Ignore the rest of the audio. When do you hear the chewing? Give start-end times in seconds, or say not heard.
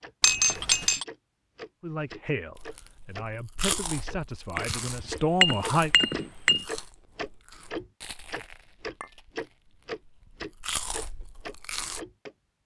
2.6-12.0.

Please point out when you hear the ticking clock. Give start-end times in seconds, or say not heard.
0.0-12.3.